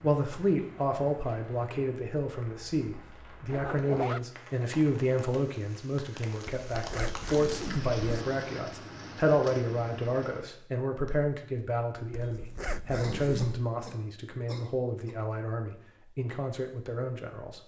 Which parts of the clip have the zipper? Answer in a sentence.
The zipper can be heard from 3.5 to 4.2 s, from 6.5 to 8.2 s and from 12.1 to 13.6 s.